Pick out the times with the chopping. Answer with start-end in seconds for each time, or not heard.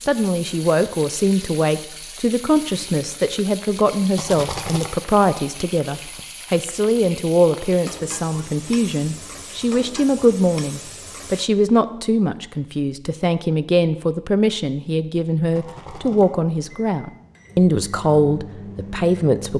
not heard.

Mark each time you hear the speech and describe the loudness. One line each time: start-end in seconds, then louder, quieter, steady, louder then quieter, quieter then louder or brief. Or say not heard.
0.0-19.5 steady.